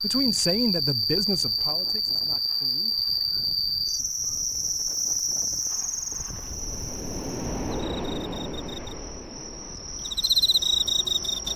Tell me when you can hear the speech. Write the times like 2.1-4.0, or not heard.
0.0-3.0.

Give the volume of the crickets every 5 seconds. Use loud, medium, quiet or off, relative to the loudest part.
loud, medium, loud.